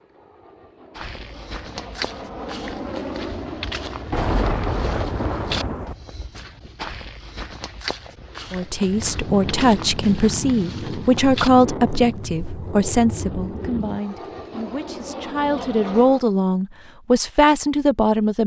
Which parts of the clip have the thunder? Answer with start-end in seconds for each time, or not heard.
4.1-6.0.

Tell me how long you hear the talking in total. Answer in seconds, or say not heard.
10 s.